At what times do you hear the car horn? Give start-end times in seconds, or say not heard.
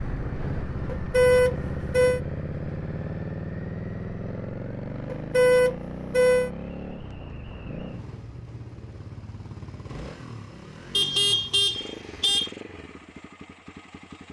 0.9-2.2, 5.0-6.5, 10.9-12.5.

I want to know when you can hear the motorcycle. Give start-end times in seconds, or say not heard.
0.0-14.2.